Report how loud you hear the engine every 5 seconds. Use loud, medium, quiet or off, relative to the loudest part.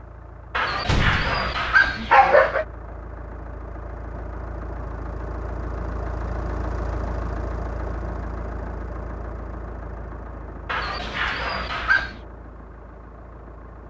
medium, loud, medium.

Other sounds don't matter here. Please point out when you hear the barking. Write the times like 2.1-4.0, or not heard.
0.6-2.6, 10.7-12.2.